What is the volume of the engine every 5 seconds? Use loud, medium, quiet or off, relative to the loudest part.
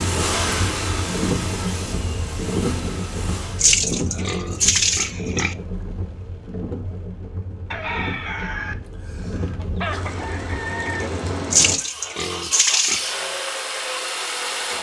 loud, off, loud.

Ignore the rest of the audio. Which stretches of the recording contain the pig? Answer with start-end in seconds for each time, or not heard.
3.5-5.5, 11.5-13.2.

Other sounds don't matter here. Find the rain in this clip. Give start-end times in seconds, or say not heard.
0.0-11.8.